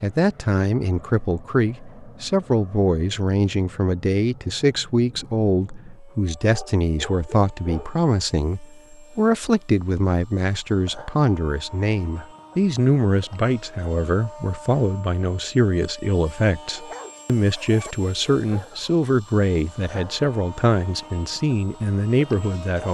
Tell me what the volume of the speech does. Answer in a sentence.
The loudness of the speech stays about the same.